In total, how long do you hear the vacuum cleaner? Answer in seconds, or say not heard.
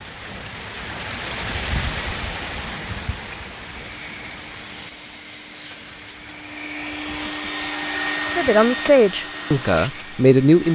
7 s.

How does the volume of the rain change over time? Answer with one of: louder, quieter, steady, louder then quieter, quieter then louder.
quieter.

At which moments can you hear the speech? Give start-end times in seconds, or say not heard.
8.3-10.7.